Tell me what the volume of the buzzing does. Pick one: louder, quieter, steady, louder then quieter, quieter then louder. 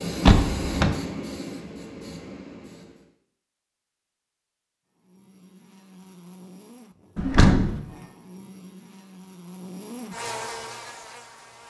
louder.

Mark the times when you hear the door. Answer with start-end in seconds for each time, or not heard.
0.2-1.0, 7.2-7.8.